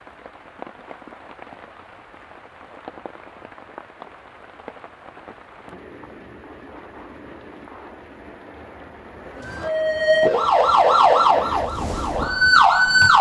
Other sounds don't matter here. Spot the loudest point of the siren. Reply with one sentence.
The loudest moment of the siren is at 13 seconds.